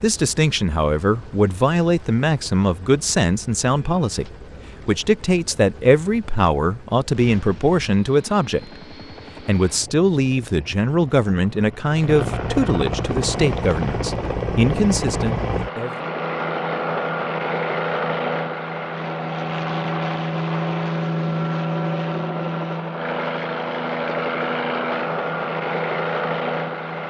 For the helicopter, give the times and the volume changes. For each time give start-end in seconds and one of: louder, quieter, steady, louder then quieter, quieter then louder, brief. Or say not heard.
0.0-27.0 louder.